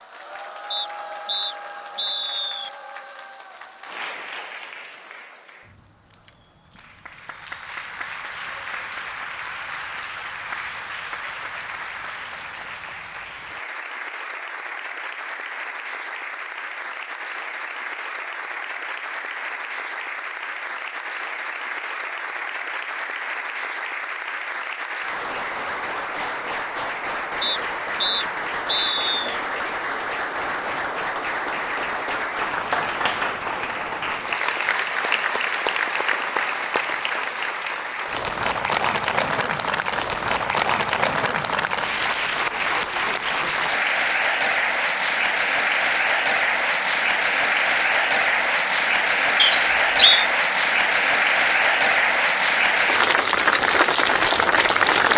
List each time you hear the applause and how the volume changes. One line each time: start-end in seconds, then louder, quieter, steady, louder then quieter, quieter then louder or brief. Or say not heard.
0.0-55.1 louder.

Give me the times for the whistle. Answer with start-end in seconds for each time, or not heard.
0.7-2.7, 27.4-29.4, 49.4-50.2.